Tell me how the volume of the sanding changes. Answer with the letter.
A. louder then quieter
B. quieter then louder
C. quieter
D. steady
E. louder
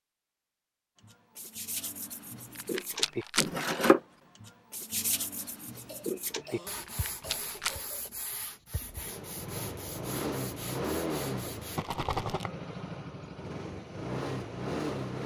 A.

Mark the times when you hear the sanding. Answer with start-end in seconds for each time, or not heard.
1.0-11.8.